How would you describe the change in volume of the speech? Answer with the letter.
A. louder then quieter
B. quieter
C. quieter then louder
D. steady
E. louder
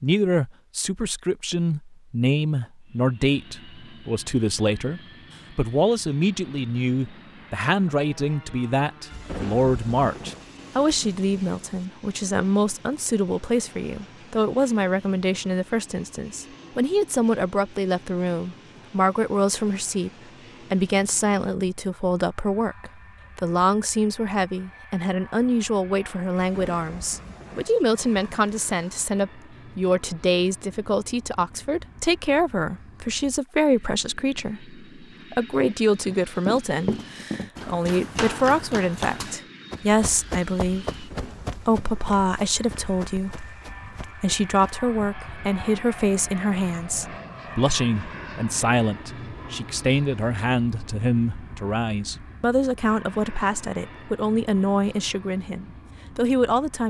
D.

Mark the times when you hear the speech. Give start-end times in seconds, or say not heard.
0.0-20.1, 20.7-56.8.